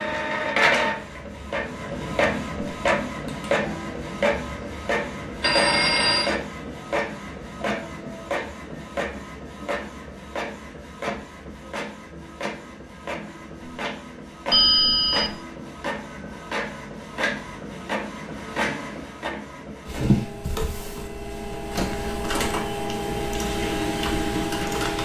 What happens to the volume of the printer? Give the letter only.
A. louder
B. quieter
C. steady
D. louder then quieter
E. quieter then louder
E.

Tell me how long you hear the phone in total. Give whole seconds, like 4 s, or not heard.
2 s.